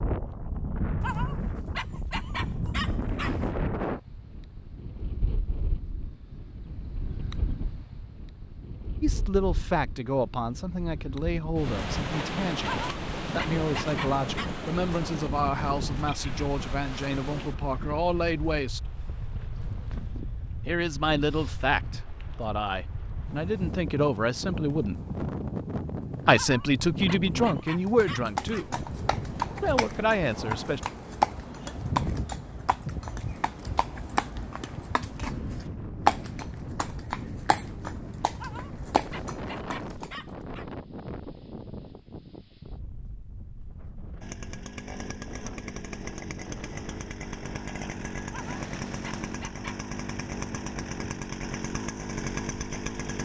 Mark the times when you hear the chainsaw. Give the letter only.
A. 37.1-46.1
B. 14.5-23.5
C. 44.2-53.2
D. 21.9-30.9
C.